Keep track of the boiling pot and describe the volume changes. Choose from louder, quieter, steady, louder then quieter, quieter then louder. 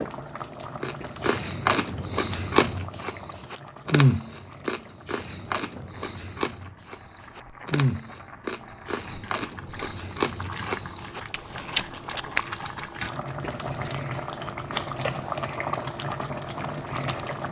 quieter then louder.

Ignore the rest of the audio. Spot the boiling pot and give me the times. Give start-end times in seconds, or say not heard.
0.0-17.4.